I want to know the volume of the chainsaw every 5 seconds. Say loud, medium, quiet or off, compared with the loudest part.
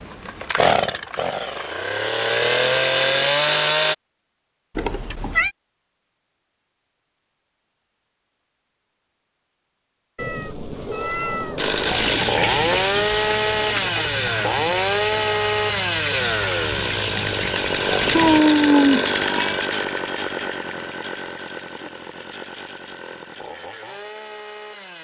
loud, off, loud, loud, quiet.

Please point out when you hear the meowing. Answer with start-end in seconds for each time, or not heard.
4.8-5.5, 10.2-12.0, 18.1-19.6.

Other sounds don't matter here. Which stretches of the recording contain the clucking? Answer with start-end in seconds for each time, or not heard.
11.8-18.4.